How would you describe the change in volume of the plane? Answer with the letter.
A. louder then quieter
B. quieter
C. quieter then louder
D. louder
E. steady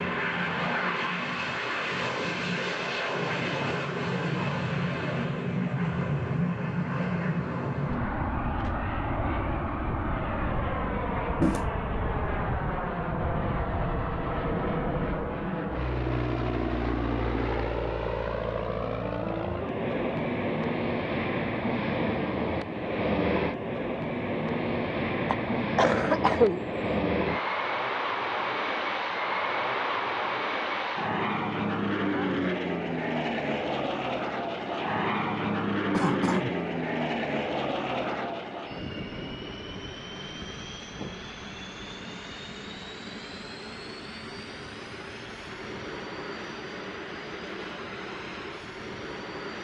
B.